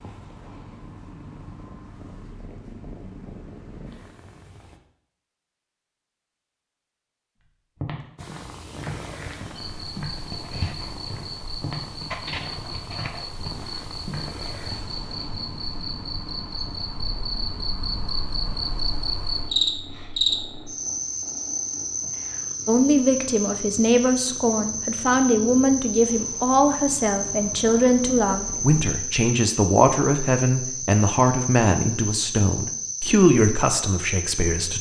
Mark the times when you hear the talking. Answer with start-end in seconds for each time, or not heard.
22.6-34.7.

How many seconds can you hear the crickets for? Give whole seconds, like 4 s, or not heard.
26 s.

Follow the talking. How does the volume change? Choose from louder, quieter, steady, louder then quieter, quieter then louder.
steady.